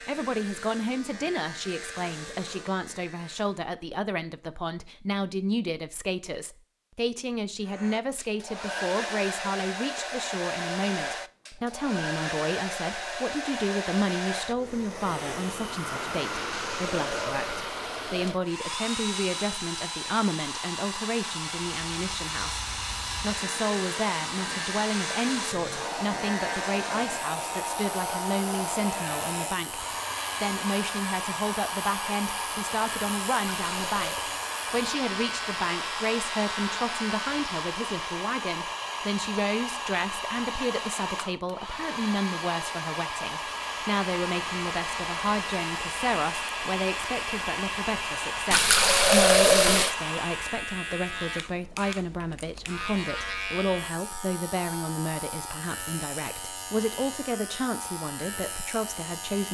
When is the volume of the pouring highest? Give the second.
49 s.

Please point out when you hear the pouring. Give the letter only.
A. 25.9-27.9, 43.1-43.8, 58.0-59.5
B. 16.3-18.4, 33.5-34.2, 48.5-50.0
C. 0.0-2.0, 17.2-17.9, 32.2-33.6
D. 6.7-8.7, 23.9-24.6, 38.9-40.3
B.